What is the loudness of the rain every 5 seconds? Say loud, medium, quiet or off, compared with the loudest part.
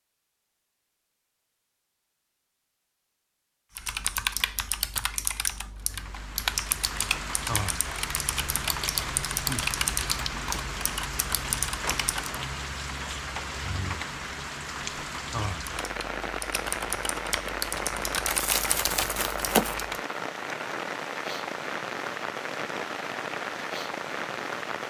off, loud, loud, loud, loud.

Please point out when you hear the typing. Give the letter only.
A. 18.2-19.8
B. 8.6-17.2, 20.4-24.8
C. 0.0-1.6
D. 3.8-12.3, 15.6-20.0
D.